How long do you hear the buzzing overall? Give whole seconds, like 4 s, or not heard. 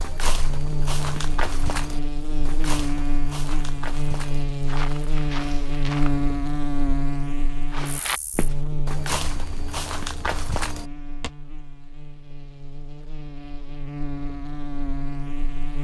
16 s.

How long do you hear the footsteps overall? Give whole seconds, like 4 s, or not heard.
10 s.